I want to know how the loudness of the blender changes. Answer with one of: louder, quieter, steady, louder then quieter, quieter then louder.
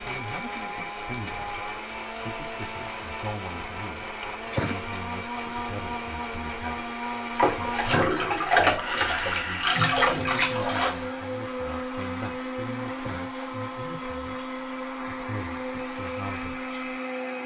steady.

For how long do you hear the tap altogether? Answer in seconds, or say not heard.
4 s.